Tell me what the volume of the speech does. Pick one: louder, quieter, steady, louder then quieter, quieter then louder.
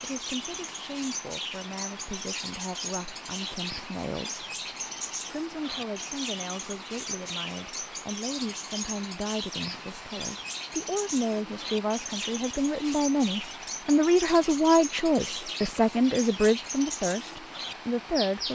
louder.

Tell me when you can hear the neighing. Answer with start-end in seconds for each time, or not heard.
not heard.